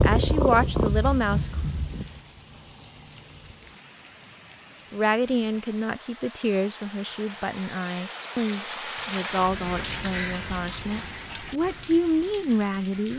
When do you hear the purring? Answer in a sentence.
The purring can be heard from 0.0 to 2.2 s.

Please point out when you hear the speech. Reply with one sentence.
The speech can be heard from 0.0 to 1.5 s and from 4.9 to 13.1 s.